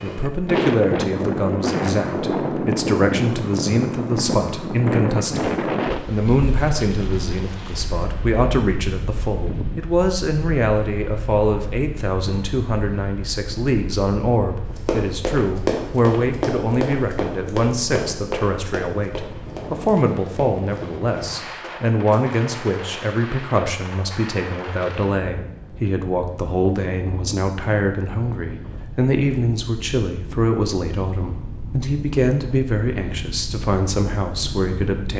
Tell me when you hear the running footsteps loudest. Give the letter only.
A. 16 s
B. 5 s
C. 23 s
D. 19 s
A.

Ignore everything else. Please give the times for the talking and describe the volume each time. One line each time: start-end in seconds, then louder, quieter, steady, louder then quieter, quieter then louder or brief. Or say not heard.
0.0-35.1 steady.